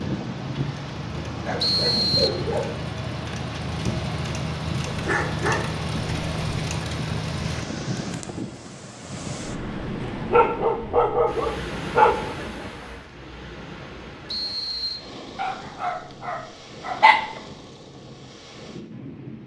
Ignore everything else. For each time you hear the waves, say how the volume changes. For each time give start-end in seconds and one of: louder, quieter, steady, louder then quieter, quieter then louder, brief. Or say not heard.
0.0-19.4 quieter.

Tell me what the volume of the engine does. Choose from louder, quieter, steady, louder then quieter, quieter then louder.
louder.